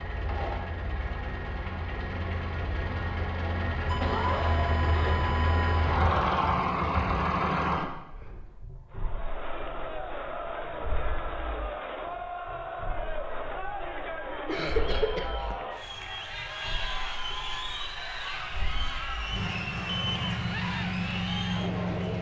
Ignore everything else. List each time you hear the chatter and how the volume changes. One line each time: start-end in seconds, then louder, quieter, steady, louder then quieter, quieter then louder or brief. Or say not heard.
8.9-22.1 steady.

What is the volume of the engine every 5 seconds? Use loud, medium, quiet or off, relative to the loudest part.
medium, loud, quiet, quiet, loud.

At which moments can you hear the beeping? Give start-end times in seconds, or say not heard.
3.9-6.0, 19.8-20.6.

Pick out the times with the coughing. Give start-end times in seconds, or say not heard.
4.0-5.3, 14.4-15.6.